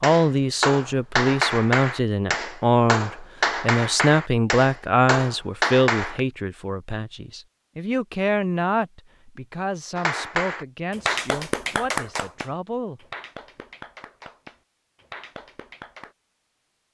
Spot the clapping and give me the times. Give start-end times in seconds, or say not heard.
0.0-6.2, 9.9-16.1.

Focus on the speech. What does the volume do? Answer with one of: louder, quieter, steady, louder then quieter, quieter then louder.
quieter.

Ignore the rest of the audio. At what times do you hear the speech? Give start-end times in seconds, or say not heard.
0.0-13.1.